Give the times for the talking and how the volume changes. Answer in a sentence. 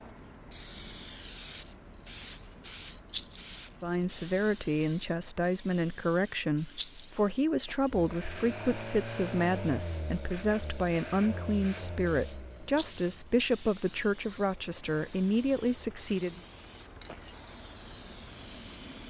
You can hear the talking from 3.8 to 16.4 s, at a steady volume.